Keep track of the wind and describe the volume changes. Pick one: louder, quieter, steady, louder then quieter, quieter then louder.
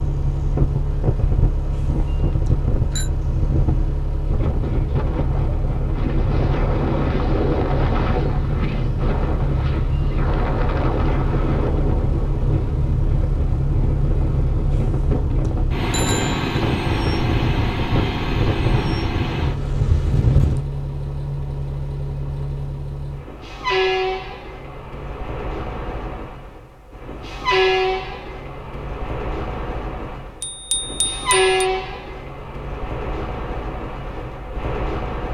steady.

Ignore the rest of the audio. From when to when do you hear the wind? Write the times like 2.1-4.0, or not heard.
0.0-20.6.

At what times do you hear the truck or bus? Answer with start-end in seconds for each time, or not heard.
0.0-35.3.